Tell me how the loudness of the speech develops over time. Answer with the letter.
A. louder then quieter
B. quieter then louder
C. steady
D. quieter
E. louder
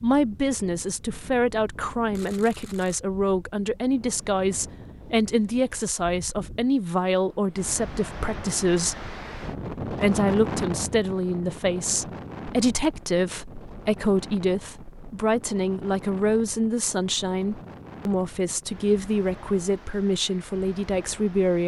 C.